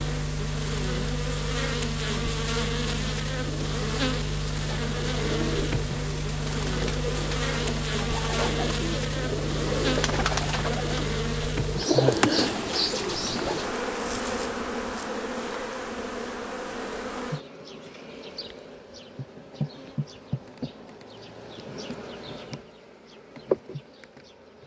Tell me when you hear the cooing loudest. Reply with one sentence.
The loudest moment of the cooing is at 12 seconds.